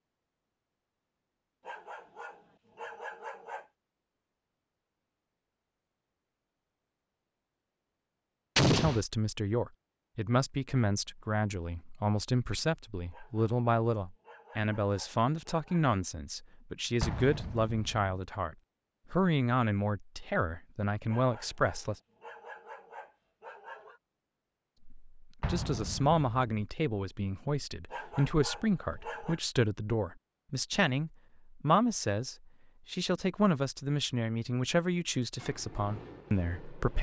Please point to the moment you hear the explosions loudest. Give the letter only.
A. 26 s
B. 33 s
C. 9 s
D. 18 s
C.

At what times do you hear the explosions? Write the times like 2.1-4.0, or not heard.
8.6-9.0, 17.0-18.1, 25.4-26.6.